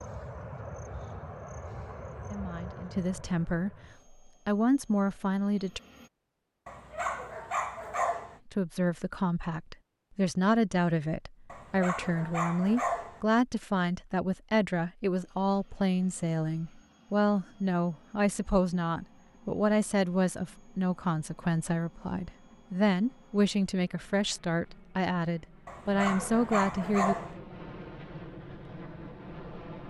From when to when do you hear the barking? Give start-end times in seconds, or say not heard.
6.7-8.4, 11.5-13.2, 25.6-27.4.